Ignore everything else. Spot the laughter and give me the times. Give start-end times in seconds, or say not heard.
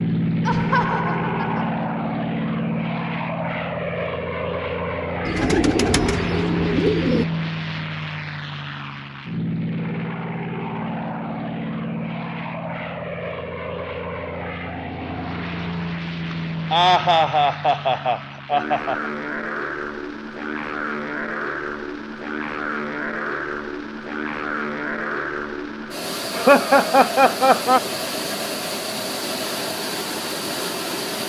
0.5-1.7, 16.3-19.1, 26.4-27.8.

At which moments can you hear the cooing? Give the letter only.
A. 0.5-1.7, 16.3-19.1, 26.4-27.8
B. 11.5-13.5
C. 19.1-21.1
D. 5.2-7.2
D.